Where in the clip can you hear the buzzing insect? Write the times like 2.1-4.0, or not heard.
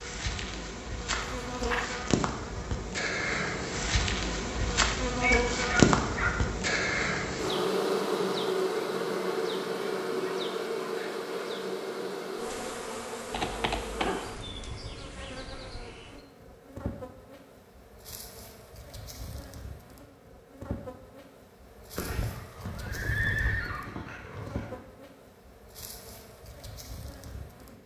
0.0-27.8.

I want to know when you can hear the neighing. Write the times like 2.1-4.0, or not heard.
1.1-1.9, 13.3-14.2, 22.0-23.9.